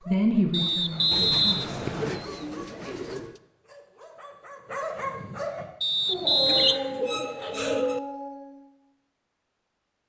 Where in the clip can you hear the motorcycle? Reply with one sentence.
You can't hear the motorcycle here.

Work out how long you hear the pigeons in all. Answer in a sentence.
You can hear the pigeons for 4 seconds altogether.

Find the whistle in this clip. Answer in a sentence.
You can hear the whistle from 0.5 to 2.2 s and from 5.8 to 6.8 s.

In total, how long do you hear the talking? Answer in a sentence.
The talking can be heard for 2 seconds in total.